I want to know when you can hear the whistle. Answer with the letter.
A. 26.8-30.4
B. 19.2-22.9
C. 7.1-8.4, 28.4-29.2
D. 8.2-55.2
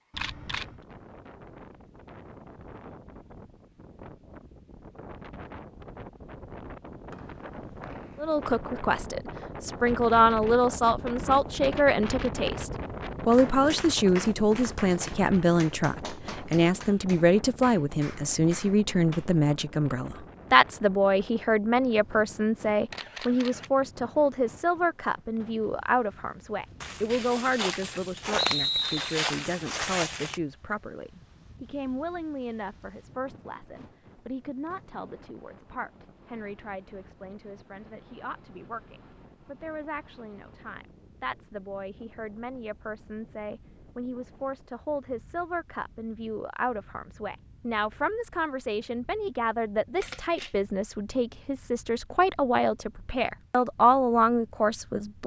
C.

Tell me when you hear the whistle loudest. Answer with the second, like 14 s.
29 s.